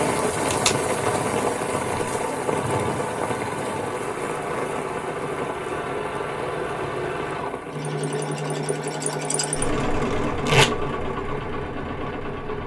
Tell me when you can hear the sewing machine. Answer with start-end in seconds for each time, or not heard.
0.1-12.6.